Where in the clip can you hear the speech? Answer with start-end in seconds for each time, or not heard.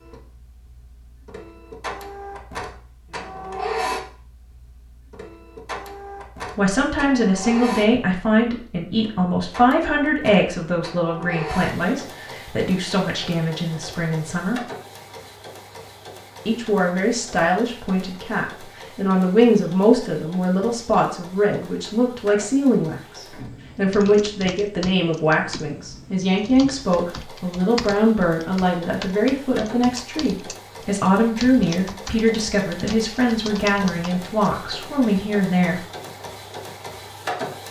6.5-14.6, 16.4-35.8.